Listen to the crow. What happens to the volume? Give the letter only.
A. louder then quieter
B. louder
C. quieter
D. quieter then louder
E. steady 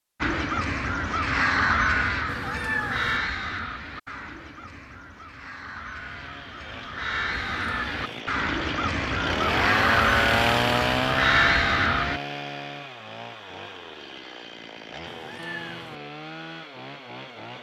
D.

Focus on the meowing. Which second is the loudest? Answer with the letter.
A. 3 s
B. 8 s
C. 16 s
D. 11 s
A.